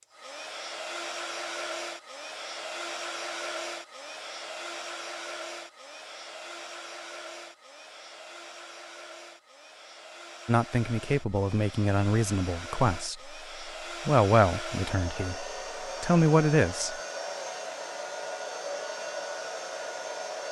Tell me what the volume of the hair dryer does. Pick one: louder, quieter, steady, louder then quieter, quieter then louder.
quieter then louder.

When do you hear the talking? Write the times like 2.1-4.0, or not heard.
10.4-13.3, 14.1-16.9.